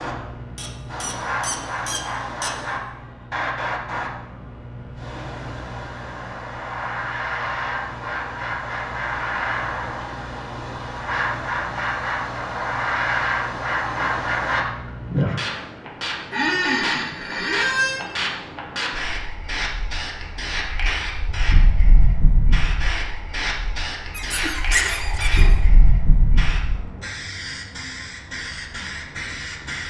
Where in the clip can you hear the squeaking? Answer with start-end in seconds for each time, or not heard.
0.6-2.5, 16.3-18.1, 24.1-25.6.